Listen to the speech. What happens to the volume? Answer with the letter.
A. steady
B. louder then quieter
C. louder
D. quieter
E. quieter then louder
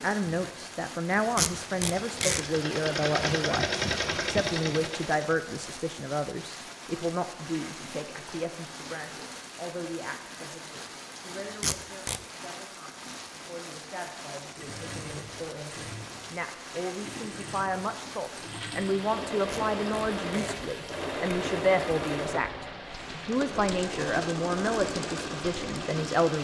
E.